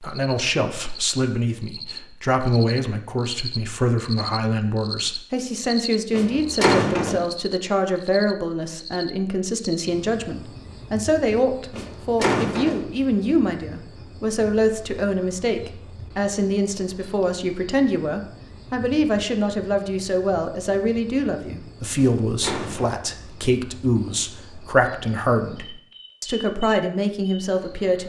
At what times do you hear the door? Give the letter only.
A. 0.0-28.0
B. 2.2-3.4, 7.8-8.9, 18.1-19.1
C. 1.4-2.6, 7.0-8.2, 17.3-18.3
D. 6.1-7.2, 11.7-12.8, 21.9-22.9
D.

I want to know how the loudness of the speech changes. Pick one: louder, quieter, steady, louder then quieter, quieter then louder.
steady.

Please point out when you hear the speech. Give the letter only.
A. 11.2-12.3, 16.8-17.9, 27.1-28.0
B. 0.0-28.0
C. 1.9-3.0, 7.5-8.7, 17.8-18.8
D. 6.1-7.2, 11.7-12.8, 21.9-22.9
B.